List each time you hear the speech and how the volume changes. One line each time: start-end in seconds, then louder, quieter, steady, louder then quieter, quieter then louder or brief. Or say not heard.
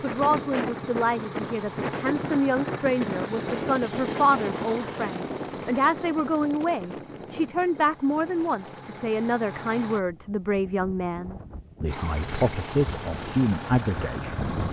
0.0-14.6 steady.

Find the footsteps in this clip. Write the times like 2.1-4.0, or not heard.
not heard.